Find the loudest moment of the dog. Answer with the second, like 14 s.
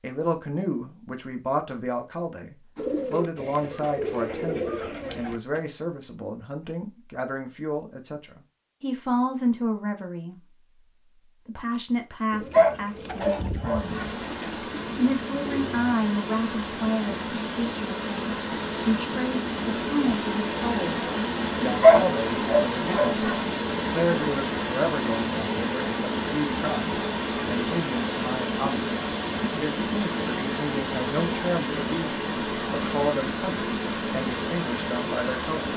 22 s.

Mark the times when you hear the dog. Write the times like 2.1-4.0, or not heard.
12.5-14.1, 21.8-23.4.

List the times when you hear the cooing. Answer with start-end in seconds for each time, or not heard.
2.8-5.6, 12.3-15.9.